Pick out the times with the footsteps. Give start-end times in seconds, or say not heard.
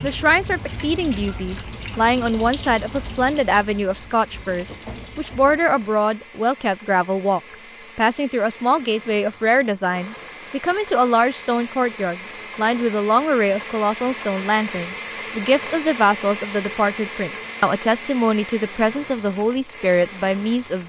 not heard.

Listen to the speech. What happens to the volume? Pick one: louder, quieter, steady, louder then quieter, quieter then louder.
steady.